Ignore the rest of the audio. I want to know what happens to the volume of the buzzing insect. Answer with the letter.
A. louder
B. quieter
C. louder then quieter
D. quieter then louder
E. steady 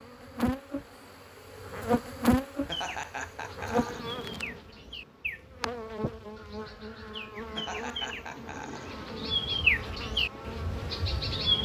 B.